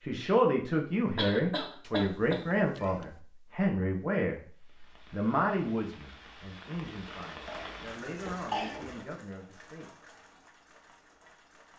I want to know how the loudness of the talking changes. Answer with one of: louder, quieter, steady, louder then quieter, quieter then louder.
quieter.